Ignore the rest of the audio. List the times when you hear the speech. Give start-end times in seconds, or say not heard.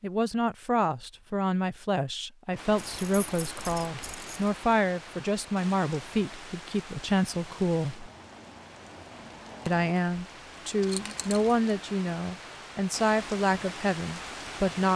0.0-8.1, 9.7-14.9.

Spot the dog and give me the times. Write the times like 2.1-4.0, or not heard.
not heard.